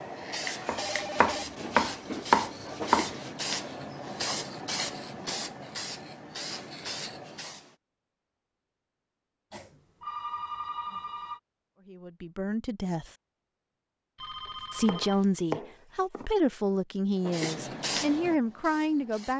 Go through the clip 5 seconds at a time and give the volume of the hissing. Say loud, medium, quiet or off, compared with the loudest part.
loud, loud, off, loud.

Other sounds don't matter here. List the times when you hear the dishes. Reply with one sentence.
The dishes can't be heard in this clip.